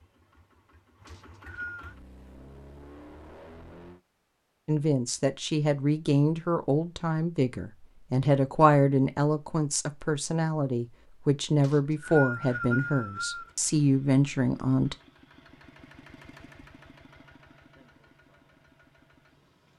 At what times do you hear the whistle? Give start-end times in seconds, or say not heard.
1.1-1.9, 11.6-13.5.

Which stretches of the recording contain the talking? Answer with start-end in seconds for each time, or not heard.
4.7-14.9.